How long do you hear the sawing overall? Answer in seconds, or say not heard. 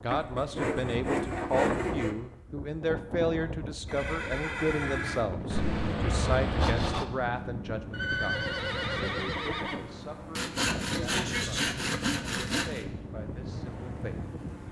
6 s.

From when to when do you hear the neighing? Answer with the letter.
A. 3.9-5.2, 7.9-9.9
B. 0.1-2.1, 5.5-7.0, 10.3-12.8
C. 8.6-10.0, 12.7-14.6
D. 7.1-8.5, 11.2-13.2
A.